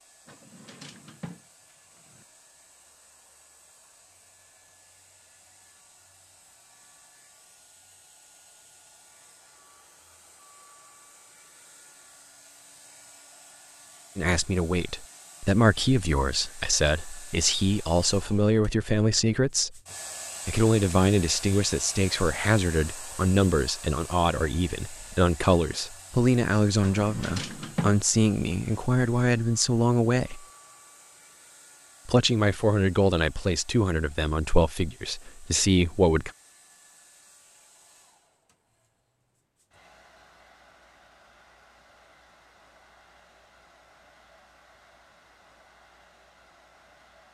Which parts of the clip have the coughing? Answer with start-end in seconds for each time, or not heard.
not heard.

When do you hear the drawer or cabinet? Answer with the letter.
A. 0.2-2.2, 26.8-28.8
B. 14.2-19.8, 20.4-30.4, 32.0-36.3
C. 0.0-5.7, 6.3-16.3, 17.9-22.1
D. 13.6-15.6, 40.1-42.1
A.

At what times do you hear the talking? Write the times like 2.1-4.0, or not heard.
14.2-19.8, 20.4-30.4, 32.0-36.3.